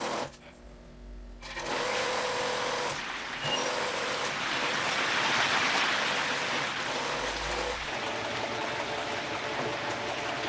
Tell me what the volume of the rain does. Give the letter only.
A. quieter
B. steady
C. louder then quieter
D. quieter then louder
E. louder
C.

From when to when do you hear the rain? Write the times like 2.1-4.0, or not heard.
1.6-10.4.